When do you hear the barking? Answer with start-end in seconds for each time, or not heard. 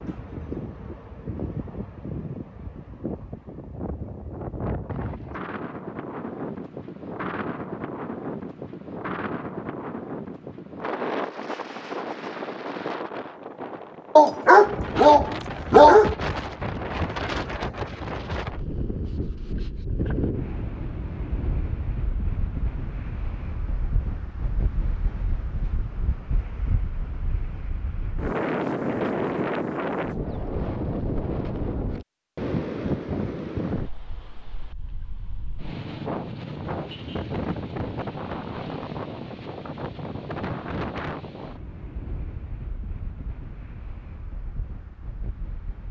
14.2-16.1.